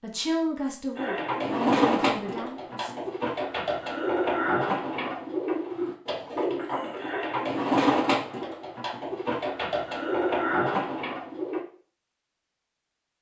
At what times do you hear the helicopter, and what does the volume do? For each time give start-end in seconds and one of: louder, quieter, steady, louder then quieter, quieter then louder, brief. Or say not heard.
not heard.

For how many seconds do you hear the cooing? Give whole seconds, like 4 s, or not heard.
11 s.